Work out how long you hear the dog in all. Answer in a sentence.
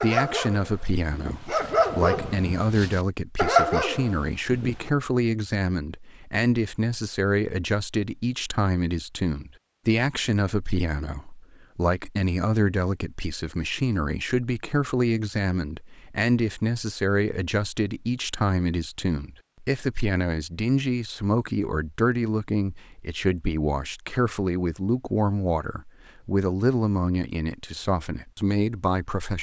You can hear the dog for 5 seconds altogether.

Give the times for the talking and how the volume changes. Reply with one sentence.
The talking can be heard from 0.0 to 29.3 s, at a steady volume.